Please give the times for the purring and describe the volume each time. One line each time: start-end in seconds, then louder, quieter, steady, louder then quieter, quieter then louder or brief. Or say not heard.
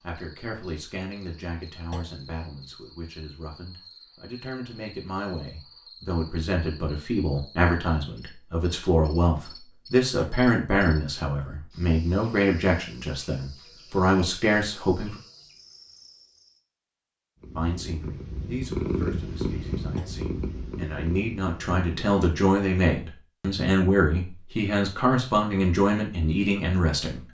17.4-22.1 louder then quieter.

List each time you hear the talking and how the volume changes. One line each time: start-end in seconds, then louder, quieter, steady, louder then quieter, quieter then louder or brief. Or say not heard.
0.0-15.2 louder
17.6-27.2 louder.